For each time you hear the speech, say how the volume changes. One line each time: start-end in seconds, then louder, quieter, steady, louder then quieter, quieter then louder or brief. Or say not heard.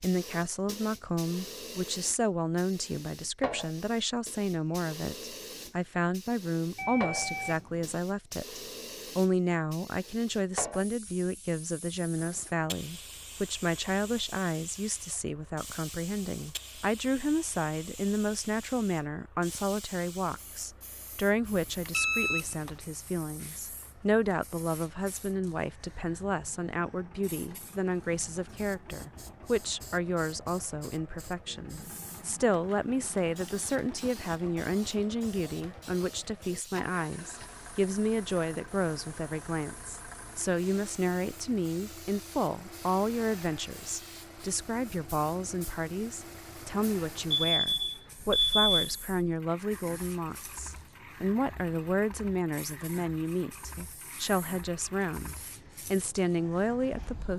0.0-57.3 steady.